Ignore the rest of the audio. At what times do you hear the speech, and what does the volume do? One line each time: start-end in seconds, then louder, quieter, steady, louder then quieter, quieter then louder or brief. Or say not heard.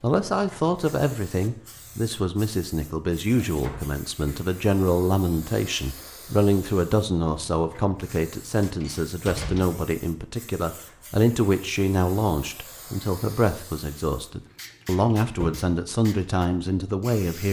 0.0-17.4 steady.